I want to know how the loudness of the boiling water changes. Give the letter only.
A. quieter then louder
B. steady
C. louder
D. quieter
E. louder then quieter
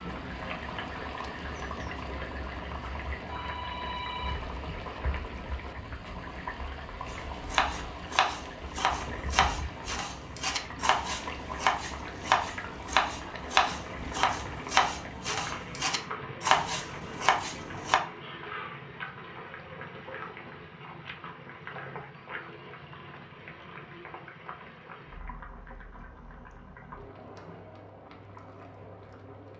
D.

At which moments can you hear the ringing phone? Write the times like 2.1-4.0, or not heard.
3.2-4.5.